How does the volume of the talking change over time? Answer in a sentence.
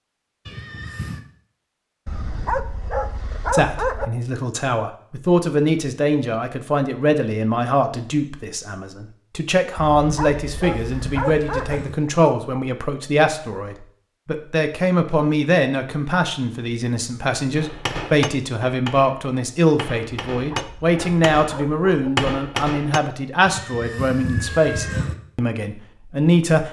The volume of the talking stays about the same.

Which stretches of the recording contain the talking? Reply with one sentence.
The talking can be heard from 3.5 to 26.6 s.